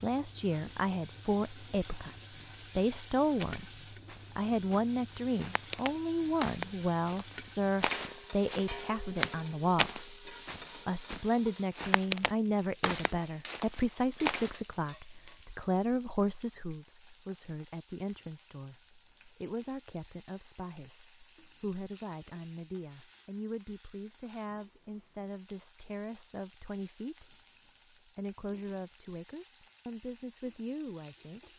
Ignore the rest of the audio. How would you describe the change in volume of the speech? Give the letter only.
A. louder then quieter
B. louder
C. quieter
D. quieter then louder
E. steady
C.